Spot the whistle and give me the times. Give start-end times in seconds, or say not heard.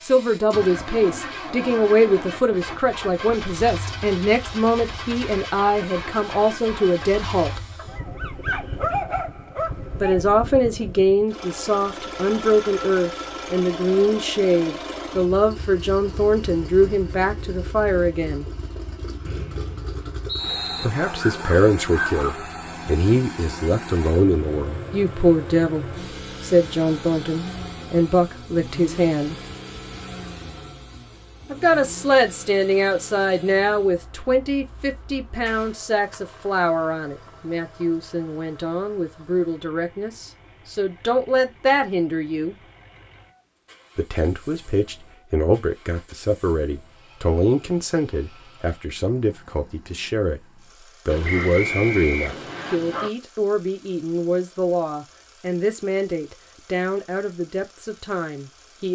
19.2-20.9, 51.2-52.8.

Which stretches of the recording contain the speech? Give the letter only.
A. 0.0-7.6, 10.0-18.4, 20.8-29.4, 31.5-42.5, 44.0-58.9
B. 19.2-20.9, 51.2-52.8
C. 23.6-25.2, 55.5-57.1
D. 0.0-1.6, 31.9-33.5
A.